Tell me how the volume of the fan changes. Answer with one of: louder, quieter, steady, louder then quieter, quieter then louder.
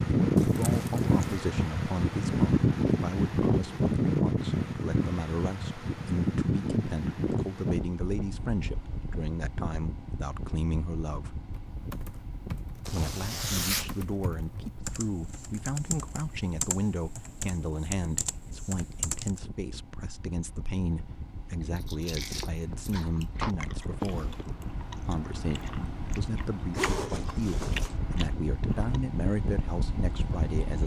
quieter then louder.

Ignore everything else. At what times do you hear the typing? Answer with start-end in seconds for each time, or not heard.
11.5-19.4.